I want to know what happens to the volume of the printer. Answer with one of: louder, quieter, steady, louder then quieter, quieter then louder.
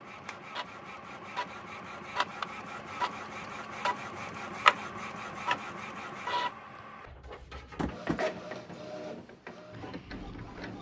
louder then quieter.